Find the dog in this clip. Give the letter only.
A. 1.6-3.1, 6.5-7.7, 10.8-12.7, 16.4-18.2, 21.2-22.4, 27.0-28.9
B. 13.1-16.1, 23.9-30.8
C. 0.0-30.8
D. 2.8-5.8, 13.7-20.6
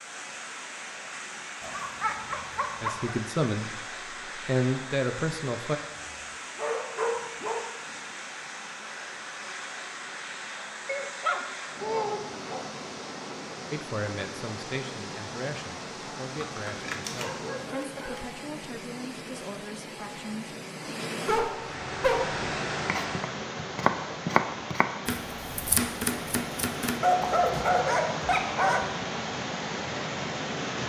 A.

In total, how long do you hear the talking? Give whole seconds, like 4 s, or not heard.
10 s.